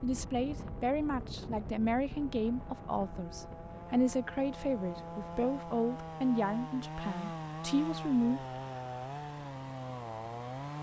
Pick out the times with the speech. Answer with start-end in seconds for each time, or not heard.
0.0-8.4.